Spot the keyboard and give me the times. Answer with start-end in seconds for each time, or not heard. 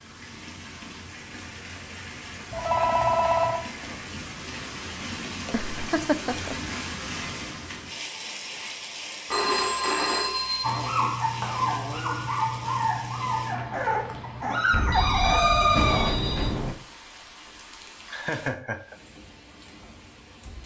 not heard.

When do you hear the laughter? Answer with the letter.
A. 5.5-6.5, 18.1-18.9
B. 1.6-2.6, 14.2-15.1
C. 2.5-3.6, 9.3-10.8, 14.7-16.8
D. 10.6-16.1
A.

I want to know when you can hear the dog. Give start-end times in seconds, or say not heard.
10.6-16.1.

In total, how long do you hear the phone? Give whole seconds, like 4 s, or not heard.
5 s.